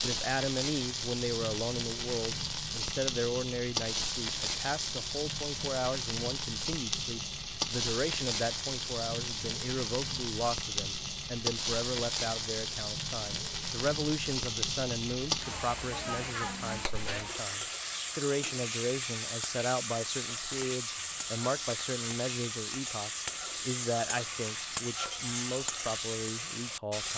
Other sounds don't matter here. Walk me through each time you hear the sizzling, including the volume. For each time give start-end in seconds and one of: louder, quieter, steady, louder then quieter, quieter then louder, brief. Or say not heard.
0.0-27.1 steady.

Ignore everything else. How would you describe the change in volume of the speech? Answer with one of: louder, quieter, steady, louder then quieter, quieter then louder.
steady.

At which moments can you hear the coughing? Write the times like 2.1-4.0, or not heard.
not heard.